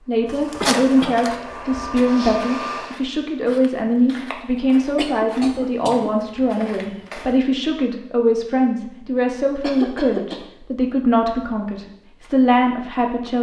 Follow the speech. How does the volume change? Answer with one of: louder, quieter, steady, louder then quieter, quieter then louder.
steady.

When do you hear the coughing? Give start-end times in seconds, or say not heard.
0.6-1.2, 5.0-6.1, 9.6-10.4.